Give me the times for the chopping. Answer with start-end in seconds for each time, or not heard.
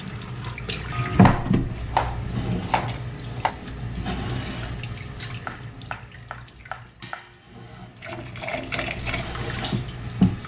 1.1-3.5, 5.5-7.3.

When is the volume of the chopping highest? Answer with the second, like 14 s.
2 s.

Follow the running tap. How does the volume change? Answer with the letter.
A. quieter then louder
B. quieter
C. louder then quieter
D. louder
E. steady
A.